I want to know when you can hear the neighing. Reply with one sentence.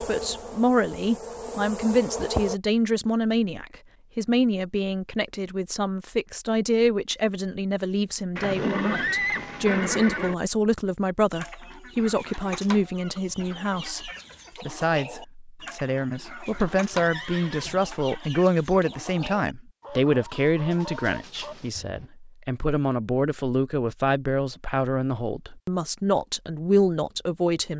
The neighing can be heard from 8.3 to 10.3 s and from 16.9 to 17.9 s.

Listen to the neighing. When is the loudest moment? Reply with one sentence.
The loudest moment of the neighing is at 9 seconds.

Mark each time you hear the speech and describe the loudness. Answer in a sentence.
The speech can be heard from 0.1 to 27.7 s, at a steady volume.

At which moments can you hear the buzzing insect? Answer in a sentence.
You can hear the buzzing insect from 0.0 to 2.5 s.